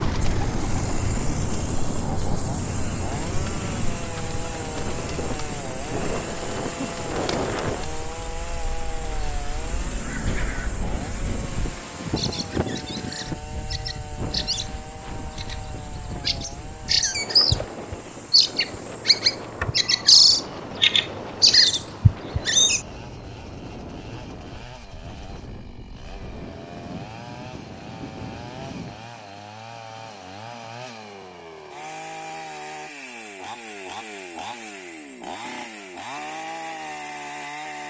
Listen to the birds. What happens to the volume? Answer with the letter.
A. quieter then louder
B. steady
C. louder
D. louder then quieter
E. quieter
A.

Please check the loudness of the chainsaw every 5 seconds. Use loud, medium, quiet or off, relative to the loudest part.
loud, loud, medium, medium, medium, medium, loud, loud.